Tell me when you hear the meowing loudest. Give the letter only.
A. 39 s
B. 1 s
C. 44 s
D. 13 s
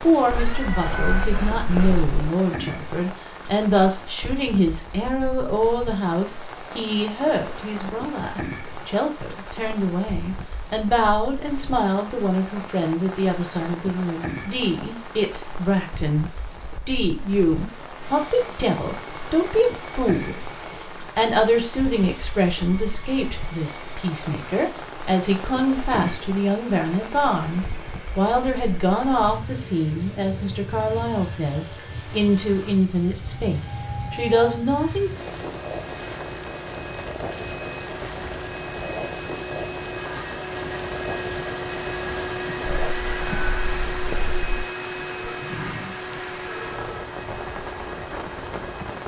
B.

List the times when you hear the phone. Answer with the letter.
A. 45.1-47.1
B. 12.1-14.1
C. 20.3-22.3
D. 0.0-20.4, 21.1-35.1
A.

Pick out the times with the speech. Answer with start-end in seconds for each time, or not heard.
0.0-20.4, 21.1-35.1.